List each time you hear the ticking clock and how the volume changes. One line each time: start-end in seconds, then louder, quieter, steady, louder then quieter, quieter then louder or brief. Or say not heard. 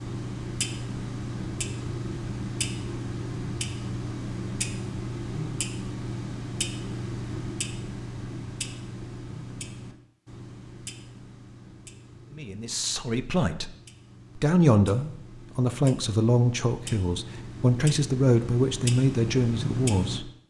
0.0-20.2 quieter then louder.